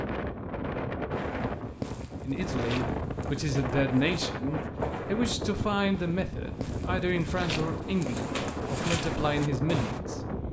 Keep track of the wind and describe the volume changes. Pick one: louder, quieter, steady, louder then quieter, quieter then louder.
steady.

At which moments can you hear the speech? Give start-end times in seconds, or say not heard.
2.2-10.4.